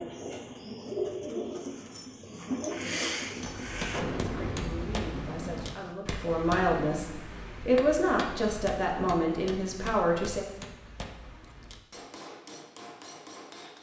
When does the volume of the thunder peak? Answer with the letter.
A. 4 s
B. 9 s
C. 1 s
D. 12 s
A.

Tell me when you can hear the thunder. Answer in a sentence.
The thunder can be heard from 3.9 to 6.0 s.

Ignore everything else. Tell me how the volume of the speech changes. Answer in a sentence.
The volume of the speech goes up.